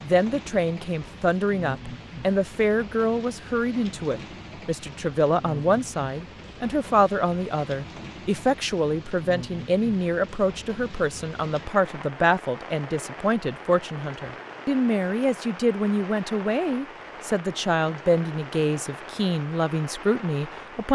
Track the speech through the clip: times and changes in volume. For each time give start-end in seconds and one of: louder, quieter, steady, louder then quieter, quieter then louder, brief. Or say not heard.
0.0-20.8 steady.